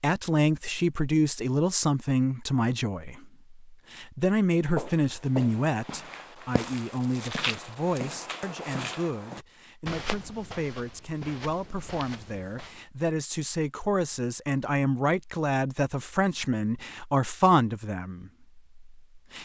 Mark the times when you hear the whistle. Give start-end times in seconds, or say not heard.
not heard.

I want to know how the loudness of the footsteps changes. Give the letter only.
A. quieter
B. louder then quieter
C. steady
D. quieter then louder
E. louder
A.